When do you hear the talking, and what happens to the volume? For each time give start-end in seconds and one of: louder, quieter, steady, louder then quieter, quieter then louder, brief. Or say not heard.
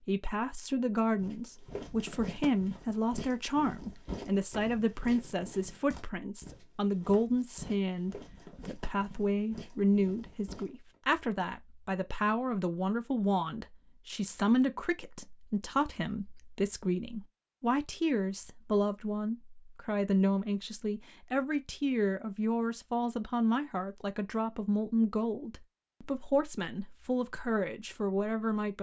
0.1-28.7 steady.